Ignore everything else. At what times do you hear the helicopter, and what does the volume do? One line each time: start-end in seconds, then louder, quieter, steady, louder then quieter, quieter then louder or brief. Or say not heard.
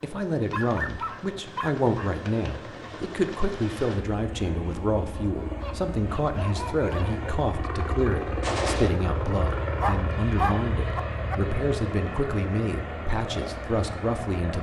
0.0-14.5 louder.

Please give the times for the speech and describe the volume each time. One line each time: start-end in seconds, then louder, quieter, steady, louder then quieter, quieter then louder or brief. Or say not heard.
0.0-14.5 steady.